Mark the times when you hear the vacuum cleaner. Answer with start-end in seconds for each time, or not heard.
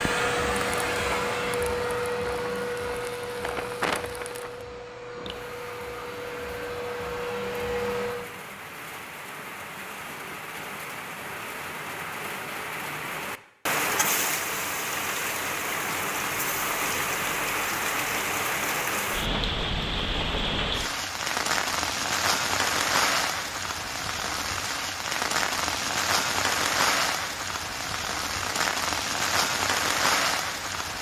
0.0-8.3.